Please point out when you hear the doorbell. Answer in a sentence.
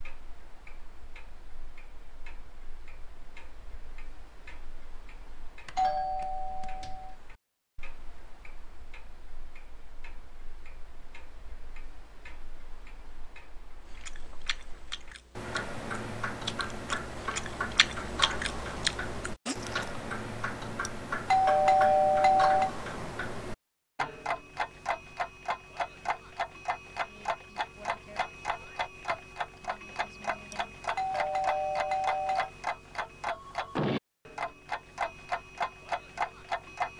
You can hear the doorbell from 5.7 to 7.2 s, from 20.9 to 22.7 s and from 30.5 to 32.5 s.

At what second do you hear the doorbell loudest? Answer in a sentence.
The volume of the doorbell peaks at 22 seconds.